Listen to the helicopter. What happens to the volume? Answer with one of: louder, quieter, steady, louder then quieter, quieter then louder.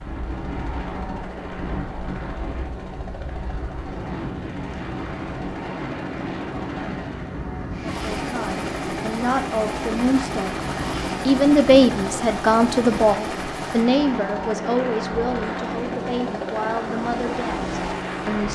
louder.